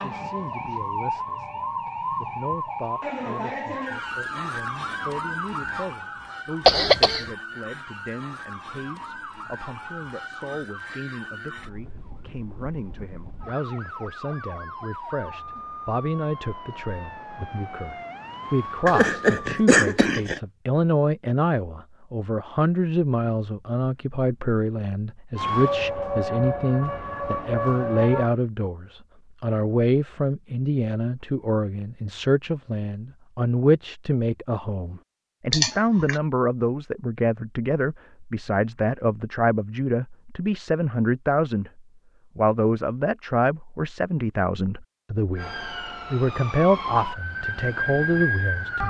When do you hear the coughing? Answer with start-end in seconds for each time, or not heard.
6.7-7.3, 18.9-20.4, 35.5-36.1.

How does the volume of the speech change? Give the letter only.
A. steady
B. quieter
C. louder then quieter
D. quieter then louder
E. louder
E.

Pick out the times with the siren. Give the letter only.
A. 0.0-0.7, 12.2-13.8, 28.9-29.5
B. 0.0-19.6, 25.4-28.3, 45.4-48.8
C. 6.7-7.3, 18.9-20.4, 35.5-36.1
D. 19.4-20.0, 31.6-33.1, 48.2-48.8
B.